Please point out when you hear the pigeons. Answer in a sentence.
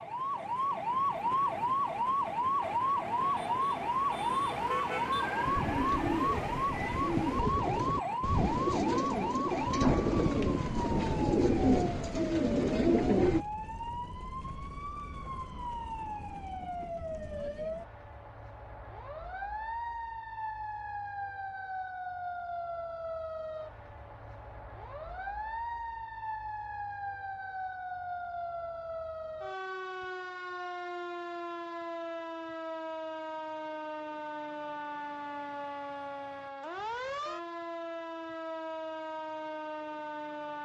The pigeons can be heard from 5.5 to 13.4 s.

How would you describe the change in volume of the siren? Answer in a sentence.
The loudness of the siren goes down.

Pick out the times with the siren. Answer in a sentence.
You can hear the siren from 0.0 to 40.6 s.